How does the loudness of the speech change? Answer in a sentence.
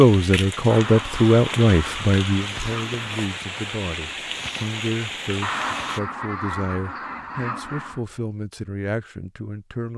The volume of the speech goes down.